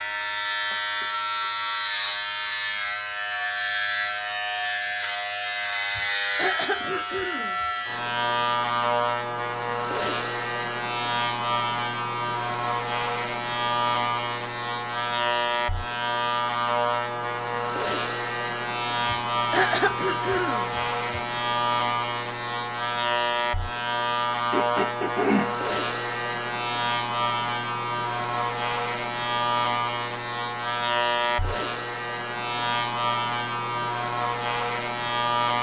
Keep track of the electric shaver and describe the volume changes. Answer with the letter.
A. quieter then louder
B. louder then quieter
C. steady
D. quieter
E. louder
C.